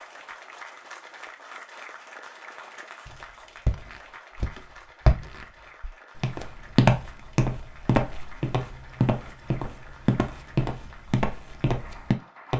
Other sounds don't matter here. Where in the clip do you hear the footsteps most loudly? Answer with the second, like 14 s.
7 s.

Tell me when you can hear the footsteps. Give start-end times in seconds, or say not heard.
3.0-12.5.